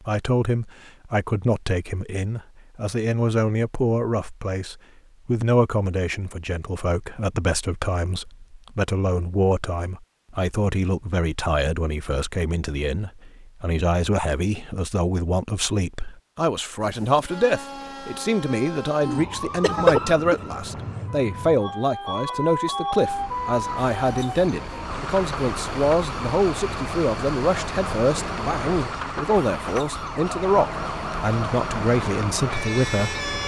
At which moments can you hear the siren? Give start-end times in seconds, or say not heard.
16.8-33.4.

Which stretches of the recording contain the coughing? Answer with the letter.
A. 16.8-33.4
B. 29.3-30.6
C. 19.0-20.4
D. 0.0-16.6
C.